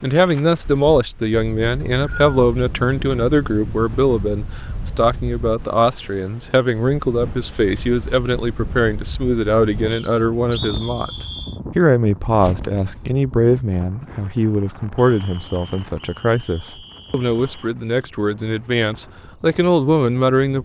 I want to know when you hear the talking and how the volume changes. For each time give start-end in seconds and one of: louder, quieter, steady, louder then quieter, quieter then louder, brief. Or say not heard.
0.0-20.5 steady.